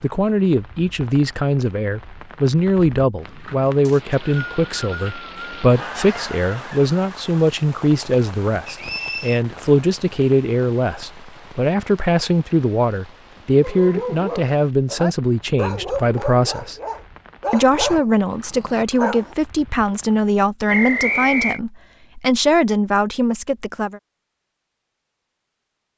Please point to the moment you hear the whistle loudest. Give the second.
21 s.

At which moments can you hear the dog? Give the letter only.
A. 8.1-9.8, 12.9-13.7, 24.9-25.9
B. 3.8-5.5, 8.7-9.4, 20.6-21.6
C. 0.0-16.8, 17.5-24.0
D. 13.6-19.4
D.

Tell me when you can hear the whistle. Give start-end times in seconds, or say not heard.
3.8-5.5, 8.7-9.4, 20.6-21.6.